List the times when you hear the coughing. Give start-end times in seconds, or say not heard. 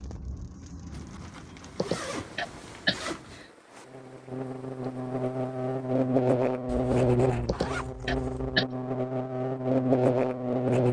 1.8-3.0, 7.5-8.7.